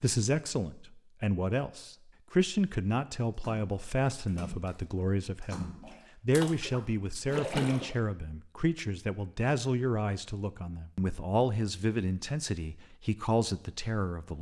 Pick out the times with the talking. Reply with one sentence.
The talking can be heard from 0.0 to 14.3 s.